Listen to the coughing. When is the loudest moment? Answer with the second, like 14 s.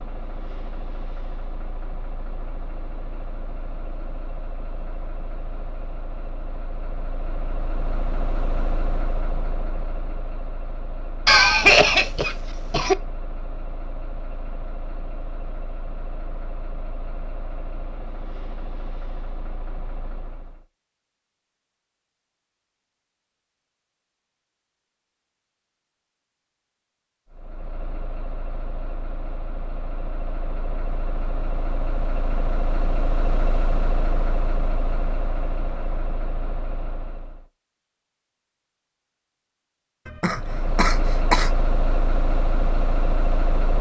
12 s.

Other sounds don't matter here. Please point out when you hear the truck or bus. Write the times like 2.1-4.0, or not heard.
0.0-20.6, 27.3-37.5, 40.3-43.7.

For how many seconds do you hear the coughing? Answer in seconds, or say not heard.
3 s.